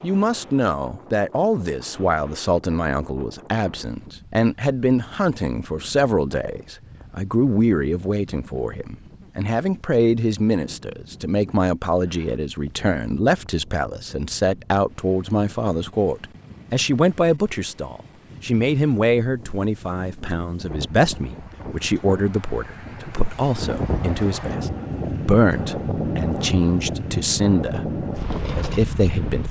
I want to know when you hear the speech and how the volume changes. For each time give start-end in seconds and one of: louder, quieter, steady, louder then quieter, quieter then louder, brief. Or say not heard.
0.0-29.4 steady.